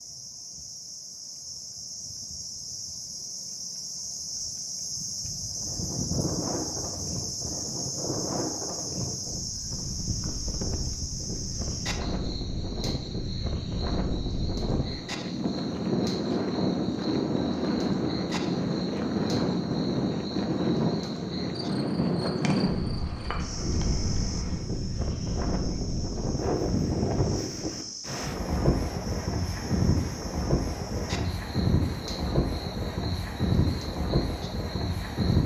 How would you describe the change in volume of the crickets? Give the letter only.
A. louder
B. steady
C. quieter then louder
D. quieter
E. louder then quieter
D.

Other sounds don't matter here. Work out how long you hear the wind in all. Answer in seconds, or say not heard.
30 s.